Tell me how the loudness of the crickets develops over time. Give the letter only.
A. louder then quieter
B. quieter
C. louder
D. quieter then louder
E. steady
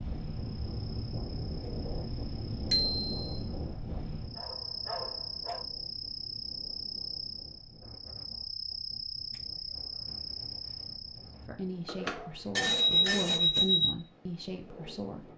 C.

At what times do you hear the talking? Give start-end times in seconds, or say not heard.
11.4-15.2.